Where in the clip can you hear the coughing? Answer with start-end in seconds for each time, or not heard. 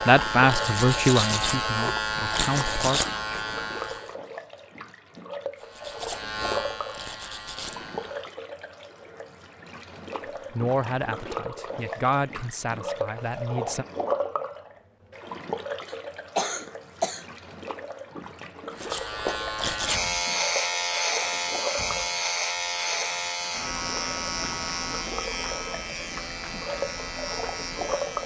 15.8-17.2.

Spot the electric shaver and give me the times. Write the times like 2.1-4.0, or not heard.
0.0-4.2, 5.5-8.2, 18.8-28.2.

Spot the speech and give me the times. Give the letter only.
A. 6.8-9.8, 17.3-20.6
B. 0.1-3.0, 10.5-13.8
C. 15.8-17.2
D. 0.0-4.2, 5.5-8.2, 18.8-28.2
B.